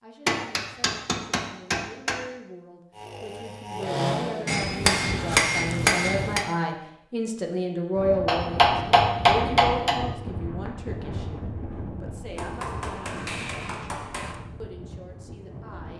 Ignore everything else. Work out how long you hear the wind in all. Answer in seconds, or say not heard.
8 s.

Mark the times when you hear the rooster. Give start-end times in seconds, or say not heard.
not heard.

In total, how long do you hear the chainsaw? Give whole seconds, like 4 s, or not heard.
2 s.